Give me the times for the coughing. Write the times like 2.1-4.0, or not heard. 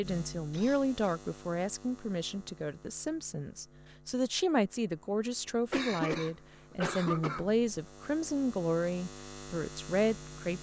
0.5-1.2, 5.7-7.5.